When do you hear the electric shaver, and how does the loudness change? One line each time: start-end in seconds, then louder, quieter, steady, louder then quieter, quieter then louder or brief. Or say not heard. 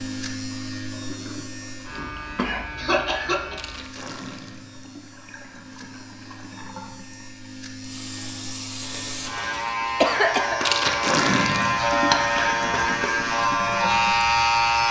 0.0-14.8 quieter then louder.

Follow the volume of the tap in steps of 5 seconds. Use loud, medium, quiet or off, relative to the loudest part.
quiet, quiet, loud.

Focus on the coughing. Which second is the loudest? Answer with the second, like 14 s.
10 s.